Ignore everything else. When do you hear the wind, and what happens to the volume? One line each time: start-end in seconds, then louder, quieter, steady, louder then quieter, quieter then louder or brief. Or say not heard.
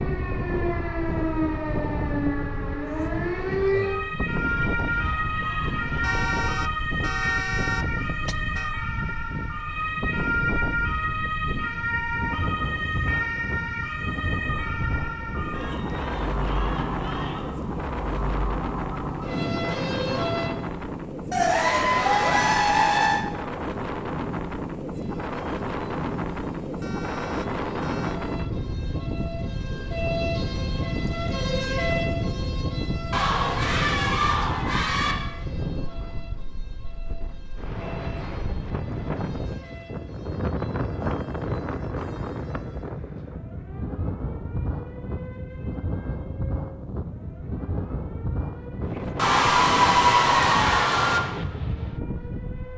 0.0-52.7 steady.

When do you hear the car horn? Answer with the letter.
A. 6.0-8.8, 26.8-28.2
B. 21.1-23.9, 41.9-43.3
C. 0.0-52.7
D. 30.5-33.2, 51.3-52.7
A.